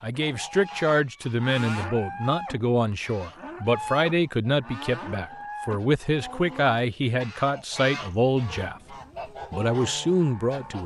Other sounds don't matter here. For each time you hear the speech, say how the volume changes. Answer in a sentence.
The speech can be heard from 0.0 to 10.8 s, at a steady volume.